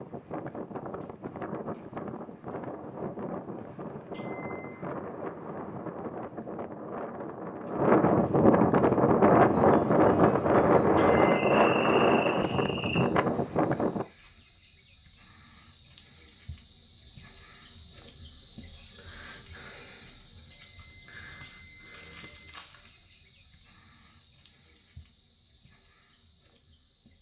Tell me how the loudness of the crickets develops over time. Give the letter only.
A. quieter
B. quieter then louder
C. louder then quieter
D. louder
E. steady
C.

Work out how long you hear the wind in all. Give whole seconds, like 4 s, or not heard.
14 s.